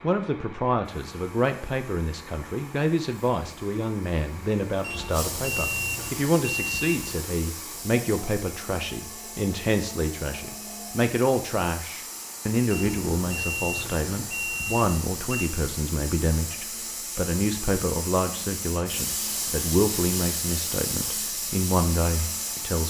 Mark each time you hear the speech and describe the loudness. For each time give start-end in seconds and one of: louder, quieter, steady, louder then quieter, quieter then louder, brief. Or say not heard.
0.0-22.8 steady.